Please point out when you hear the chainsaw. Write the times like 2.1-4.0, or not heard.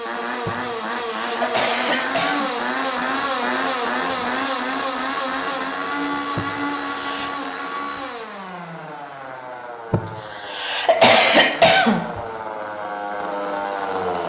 0.0-14.2.